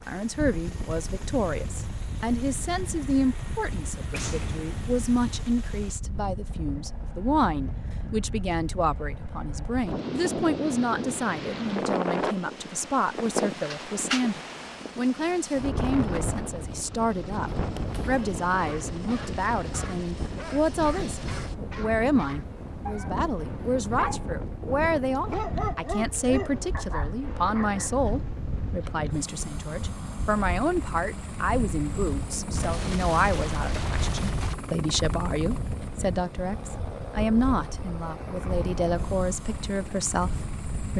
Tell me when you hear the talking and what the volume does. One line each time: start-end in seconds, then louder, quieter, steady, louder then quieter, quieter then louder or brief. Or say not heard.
0.1-40.9 steady.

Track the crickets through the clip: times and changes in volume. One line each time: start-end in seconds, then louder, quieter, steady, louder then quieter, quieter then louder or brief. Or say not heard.
not heard.